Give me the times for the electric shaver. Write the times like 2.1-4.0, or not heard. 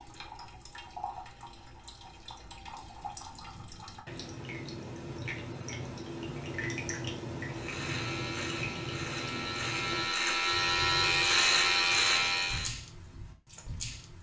7.5-12.8.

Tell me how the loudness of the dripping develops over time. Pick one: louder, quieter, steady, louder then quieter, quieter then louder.
louder then quieter.